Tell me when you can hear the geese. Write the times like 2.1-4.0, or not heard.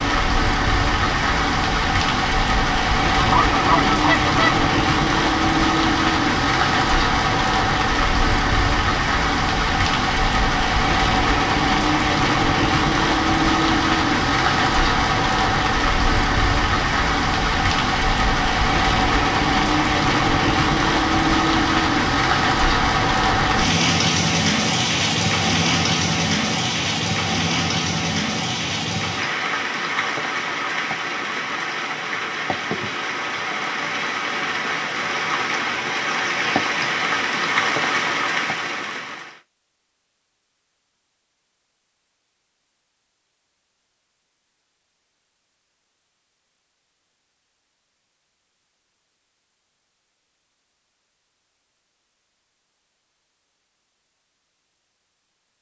3.1-4.7.